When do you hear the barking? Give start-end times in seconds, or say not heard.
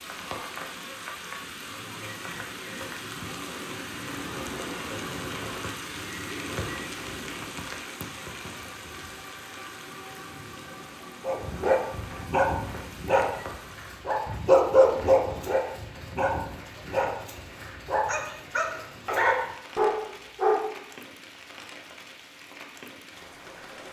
11.2-20.6.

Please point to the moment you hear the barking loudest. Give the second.
15 s.